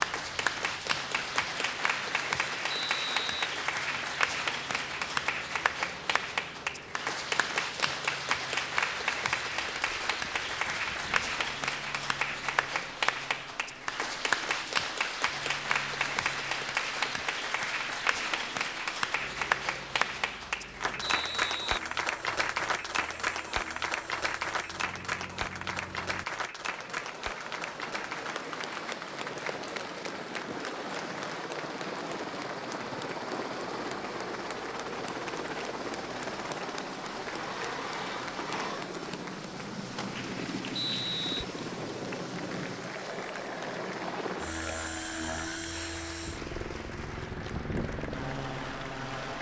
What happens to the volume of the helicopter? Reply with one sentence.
The loudness of the helicopter goes up.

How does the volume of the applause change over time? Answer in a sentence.
The volume of the applause goes down.